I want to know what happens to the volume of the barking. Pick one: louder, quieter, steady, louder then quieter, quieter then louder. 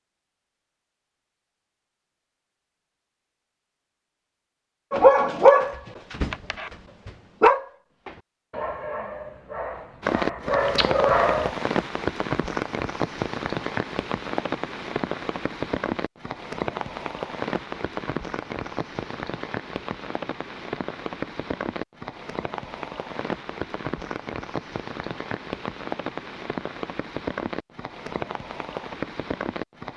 quieter then louder.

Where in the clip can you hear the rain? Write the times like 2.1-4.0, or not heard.
10.0-29.9.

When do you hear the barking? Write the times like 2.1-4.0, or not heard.
4.9-11.5.